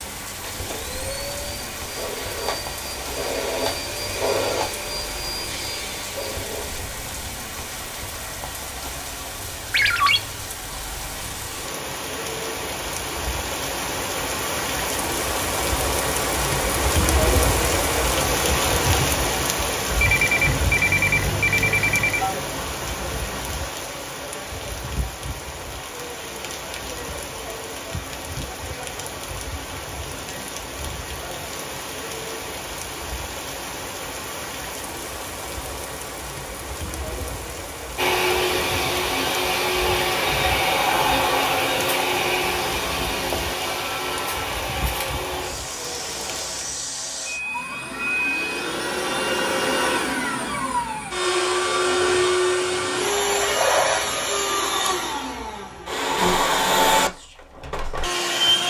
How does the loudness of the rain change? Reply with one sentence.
The volume of the rain goes up, then down.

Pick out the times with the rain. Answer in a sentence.
You can hear the rain from 0.0 to 46.9 s.